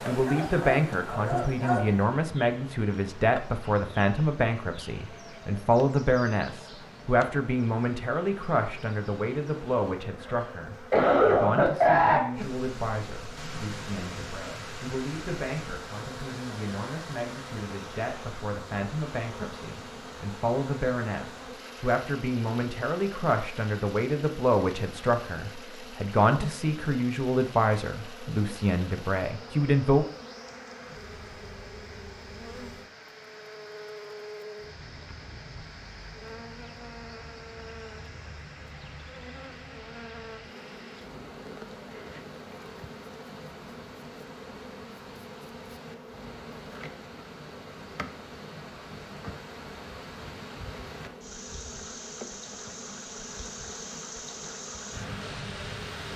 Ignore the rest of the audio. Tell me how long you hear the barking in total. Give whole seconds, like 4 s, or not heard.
2 s.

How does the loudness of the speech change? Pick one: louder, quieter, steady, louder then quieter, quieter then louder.
quieter then louder.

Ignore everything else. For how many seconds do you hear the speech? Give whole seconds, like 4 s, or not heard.
30 s.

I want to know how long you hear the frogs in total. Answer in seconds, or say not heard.
not heard.